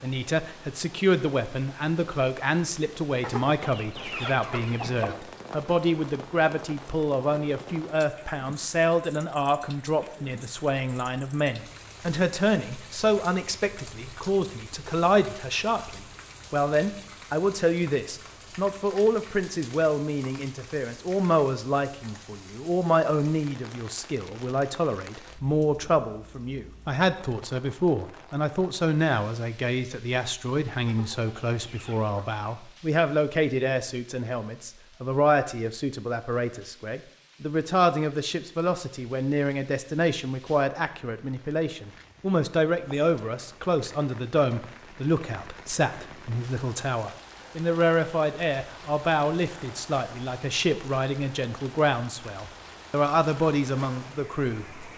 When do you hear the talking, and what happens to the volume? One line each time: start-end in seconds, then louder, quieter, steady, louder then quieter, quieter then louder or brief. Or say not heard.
0.0-54.9 steady.